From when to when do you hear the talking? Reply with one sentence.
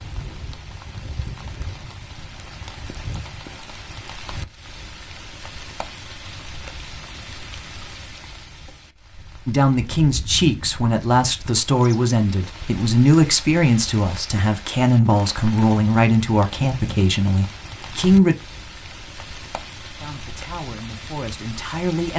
The talking can be heard from 9.4 to 18.4 s and from 19.9 to 22.1 s.